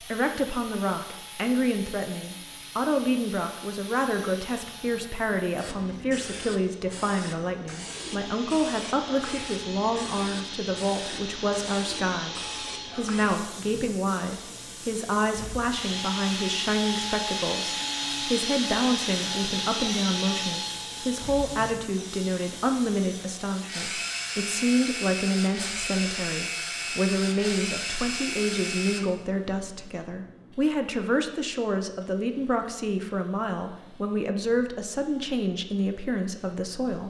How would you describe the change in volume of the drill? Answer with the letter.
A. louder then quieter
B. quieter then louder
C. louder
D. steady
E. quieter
C.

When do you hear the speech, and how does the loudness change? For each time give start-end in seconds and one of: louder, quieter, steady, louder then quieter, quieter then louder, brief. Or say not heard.
0.0-37.0 steady.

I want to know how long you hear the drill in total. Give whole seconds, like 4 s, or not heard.
29 s.